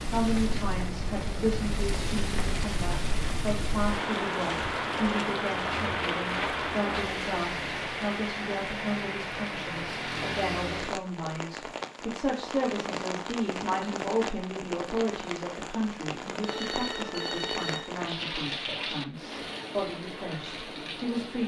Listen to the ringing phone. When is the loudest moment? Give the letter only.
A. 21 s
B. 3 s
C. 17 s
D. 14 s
C.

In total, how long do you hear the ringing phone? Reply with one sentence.
You can hear the ringing phone for 2 seconds altogether.